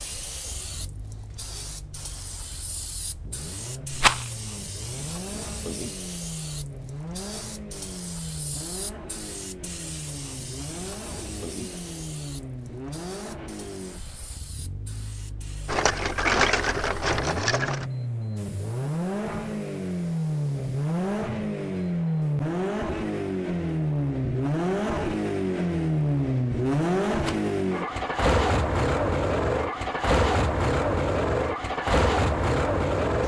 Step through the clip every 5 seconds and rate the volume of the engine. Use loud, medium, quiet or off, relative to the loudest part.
quiet, quiet, quiet, medium, loud, loud, loud.